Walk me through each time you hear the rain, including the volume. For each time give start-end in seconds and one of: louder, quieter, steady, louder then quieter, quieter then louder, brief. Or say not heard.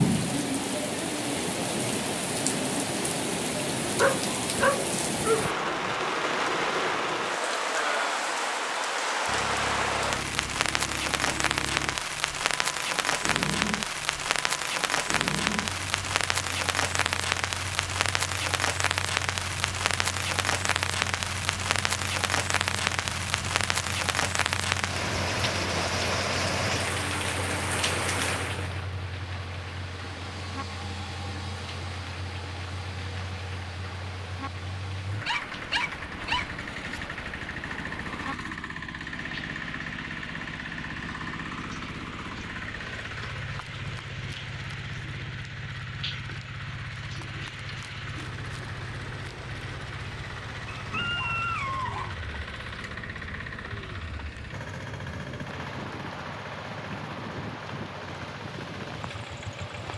0.0-59.9 quieter.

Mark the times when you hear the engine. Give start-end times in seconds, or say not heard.
9.2-59.9.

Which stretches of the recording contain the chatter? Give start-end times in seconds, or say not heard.
not heard.